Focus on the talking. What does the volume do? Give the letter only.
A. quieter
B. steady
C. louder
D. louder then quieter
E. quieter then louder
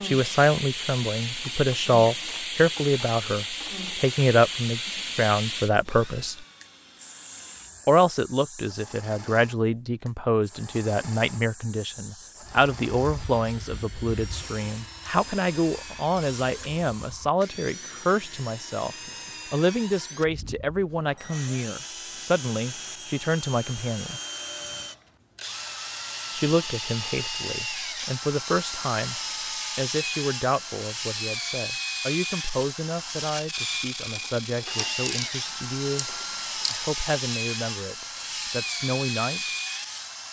A.